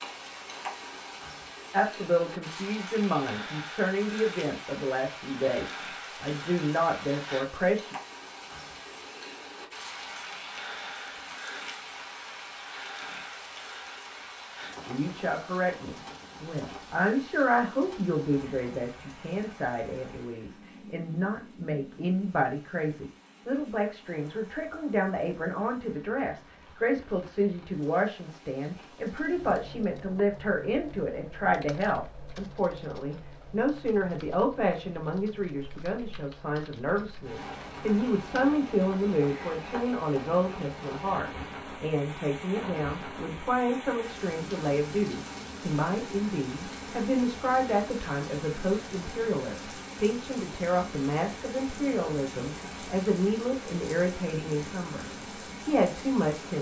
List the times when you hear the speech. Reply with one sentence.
The speech can be heard from 1.7 to 8.0 s, from 14.8 to 55.0 s and from 55.6 to 56.5 s.